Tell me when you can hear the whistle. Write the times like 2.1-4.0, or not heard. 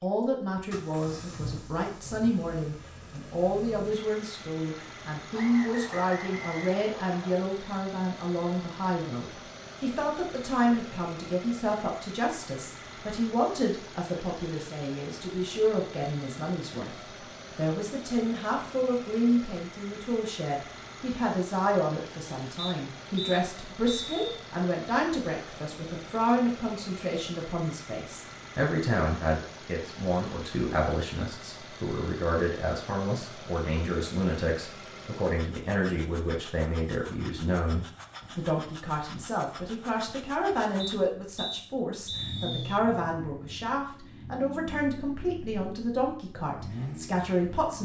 5.3-7.3, 22.6-24.2, 40.8-42.8.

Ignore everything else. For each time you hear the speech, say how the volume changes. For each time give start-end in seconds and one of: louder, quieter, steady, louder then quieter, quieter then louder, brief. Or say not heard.
0.0-47.8 steady.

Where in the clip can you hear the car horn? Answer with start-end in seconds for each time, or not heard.
not heard.